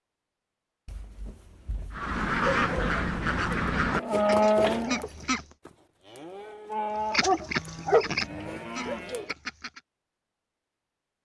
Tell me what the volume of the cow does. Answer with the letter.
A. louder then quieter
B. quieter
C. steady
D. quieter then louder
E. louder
D.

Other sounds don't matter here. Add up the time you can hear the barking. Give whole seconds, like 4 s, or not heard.
3 s.